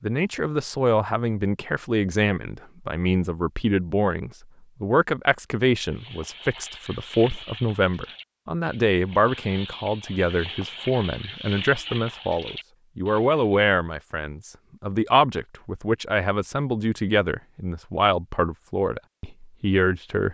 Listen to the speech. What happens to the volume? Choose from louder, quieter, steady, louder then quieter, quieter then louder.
steady.